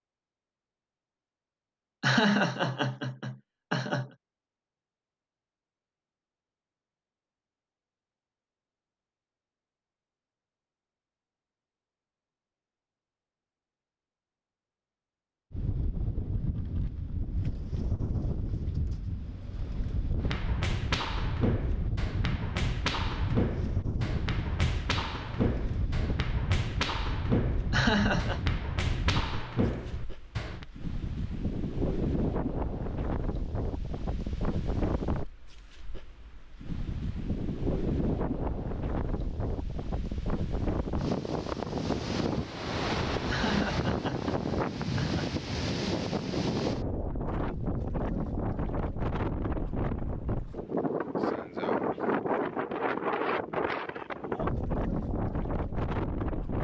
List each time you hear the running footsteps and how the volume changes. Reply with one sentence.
You can hear the running footsteps from 20.2 to 30.6 s, at a steady volume.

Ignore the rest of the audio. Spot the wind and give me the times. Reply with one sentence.
You can hear the wind from 15.5 to 56.5 s.